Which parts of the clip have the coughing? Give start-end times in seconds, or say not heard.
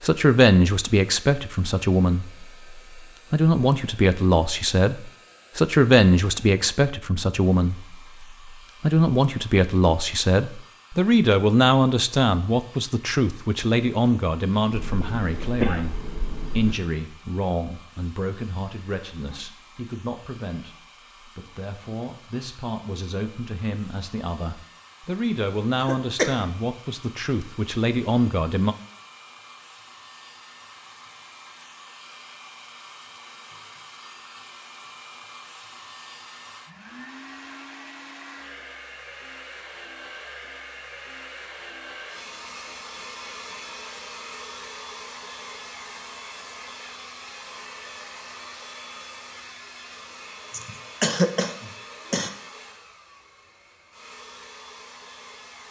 14.7-16.8, 25.8-26.4, 50.5-52.3.